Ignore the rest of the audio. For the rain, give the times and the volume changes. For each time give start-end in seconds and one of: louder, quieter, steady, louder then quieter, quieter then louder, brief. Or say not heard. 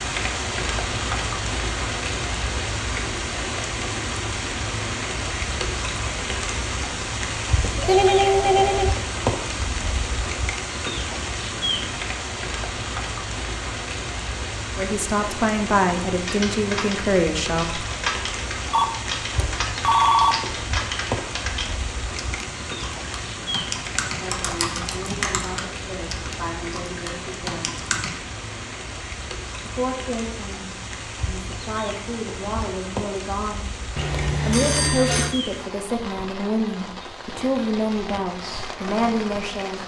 0.0-39.8 quieter.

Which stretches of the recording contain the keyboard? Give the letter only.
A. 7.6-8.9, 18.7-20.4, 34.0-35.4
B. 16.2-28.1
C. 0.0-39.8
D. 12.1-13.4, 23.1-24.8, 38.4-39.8
B.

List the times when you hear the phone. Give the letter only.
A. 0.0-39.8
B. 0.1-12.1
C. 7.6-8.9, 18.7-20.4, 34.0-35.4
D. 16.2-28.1
C.